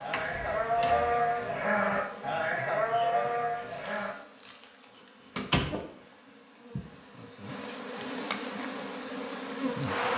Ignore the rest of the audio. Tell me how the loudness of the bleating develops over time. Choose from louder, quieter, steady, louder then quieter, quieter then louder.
steady.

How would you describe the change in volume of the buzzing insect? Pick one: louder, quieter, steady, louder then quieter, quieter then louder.
louder.